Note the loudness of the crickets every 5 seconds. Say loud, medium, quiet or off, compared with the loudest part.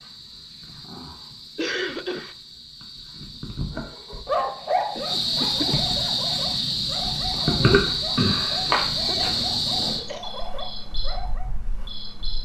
quiet, loud, quiet.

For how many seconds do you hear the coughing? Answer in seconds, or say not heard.
3 s.